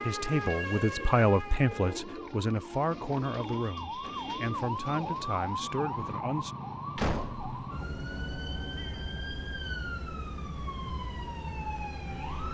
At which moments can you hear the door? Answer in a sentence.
The door can be heard from 7.0 to 7.6 s.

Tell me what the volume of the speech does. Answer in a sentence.
The volume of the speech goes down.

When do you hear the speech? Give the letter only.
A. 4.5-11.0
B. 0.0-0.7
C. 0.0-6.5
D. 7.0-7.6
C.